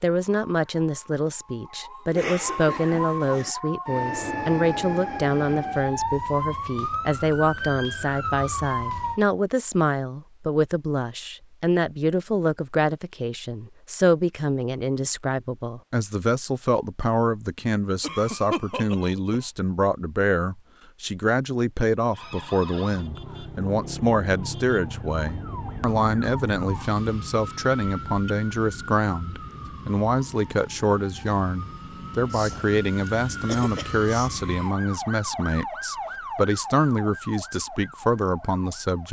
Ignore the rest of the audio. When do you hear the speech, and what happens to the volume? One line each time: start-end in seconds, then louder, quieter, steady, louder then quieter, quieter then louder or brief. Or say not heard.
0.0-39.0 steady.